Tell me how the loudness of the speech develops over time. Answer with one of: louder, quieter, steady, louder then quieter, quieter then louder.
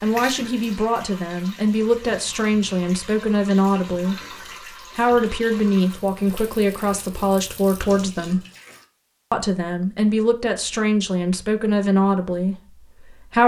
steady.